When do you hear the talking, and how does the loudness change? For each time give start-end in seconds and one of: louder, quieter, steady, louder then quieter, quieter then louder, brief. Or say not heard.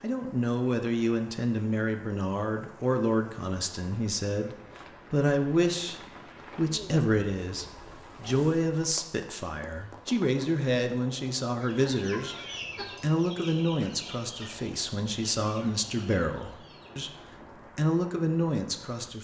0.0-19.2 steady.